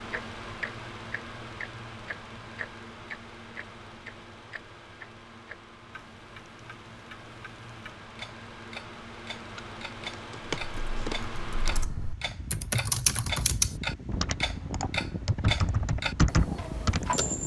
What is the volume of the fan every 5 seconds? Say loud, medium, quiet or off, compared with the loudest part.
medium, medium, loud, loud.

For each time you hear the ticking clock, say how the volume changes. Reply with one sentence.
The ticking clock can be heard from 0.1 to 17.4 s, getting quieter then louder.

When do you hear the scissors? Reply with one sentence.
The scissors can be heard from 9.4 to 11.3 s.